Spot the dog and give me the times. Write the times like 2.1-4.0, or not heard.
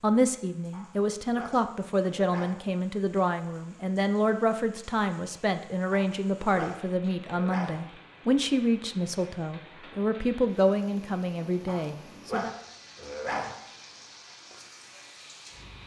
0.7-2.6, 5.9-7.8, 11.7-13.6.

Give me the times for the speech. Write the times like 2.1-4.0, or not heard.
0.0-12.6.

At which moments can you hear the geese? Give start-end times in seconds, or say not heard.
not heard.